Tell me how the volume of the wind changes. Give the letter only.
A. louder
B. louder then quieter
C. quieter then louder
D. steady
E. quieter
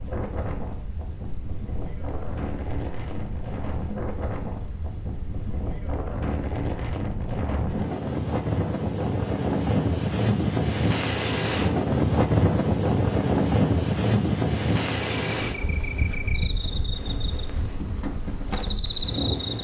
B.